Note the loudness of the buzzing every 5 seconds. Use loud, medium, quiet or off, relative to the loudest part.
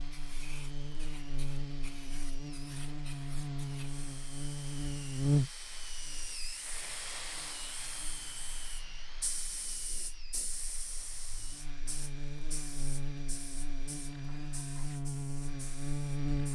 medium, loud, medium, loud.